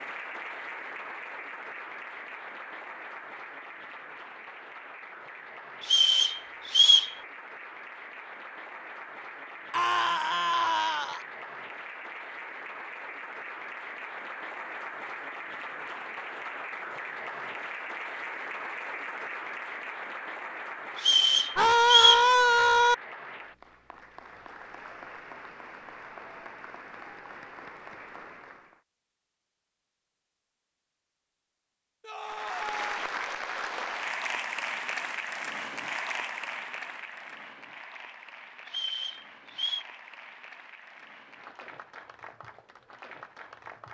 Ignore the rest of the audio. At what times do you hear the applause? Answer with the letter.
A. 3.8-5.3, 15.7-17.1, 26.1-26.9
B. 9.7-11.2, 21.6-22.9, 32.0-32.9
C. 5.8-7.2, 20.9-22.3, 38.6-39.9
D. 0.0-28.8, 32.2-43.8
D.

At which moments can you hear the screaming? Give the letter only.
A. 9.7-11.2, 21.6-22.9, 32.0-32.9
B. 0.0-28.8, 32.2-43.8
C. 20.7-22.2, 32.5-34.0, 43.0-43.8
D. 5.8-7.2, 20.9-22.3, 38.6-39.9
A.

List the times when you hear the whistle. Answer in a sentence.
The whistle can be heard from 5.8 to 7.2 s, from 20.9 to 22.3 s and from 38.6 to 39.9 s.